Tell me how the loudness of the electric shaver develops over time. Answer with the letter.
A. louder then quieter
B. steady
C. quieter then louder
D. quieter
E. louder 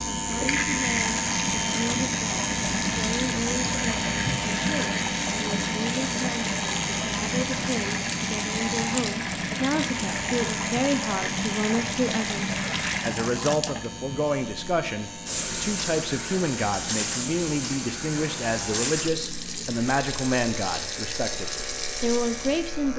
D.